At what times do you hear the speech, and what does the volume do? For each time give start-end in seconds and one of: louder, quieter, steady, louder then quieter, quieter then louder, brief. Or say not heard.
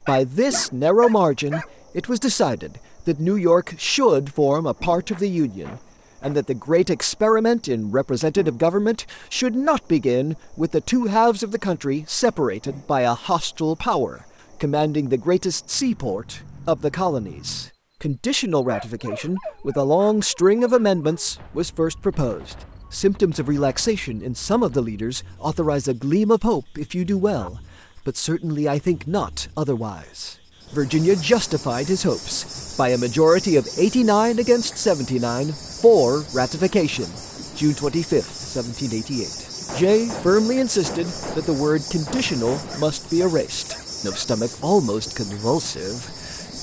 0.1-46.5 steady.